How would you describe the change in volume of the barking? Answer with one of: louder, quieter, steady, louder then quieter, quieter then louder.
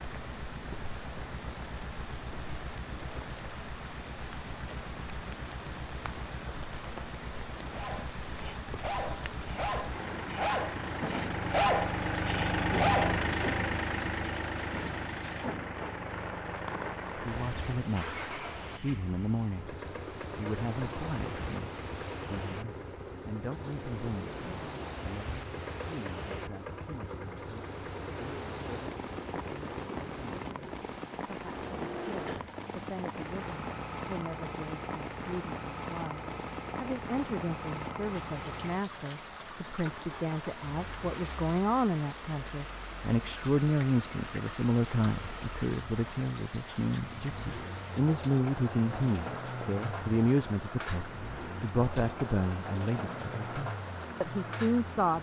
louder then quieter.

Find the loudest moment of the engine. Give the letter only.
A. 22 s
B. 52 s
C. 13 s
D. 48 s
C.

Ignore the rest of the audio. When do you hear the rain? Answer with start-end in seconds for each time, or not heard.
0.0-55.1.